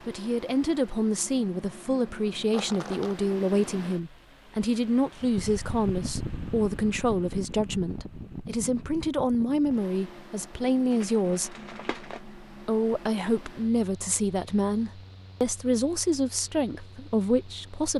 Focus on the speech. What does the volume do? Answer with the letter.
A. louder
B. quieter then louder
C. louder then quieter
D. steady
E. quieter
D.